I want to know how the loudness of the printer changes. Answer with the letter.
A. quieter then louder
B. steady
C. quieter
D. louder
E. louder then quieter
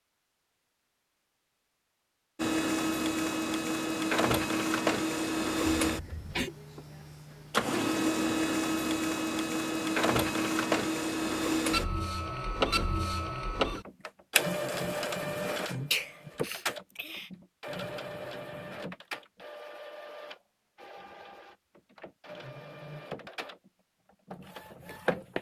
C.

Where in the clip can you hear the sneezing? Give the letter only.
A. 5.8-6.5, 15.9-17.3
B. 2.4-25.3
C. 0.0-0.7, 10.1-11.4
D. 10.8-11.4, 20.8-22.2
A.